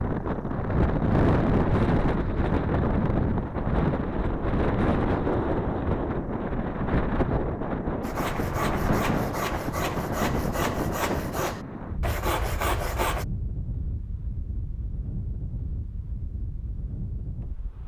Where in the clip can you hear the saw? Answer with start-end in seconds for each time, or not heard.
8.0-13.2.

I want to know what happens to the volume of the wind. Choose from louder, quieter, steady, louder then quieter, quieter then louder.
quieter.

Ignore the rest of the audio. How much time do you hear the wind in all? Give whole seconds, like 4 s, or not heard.
18 s.